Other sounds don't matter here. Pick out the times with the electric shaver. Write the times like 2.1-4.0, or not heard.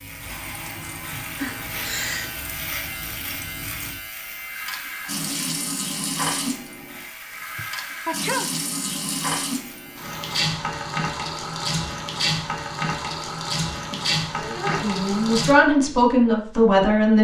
0.0-10.2.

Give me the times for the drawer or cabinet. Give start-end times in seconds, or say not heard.
not heard.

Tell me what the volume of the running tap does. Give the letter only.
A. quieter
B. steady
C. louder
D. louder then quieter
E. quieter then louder
C.